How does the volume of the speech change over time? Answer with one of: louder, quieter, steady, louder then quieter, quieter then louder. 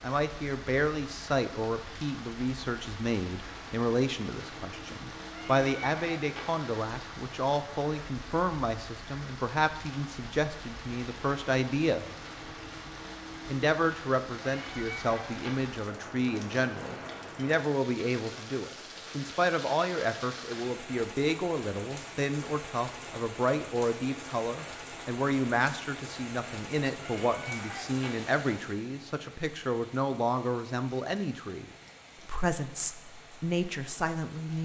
steady.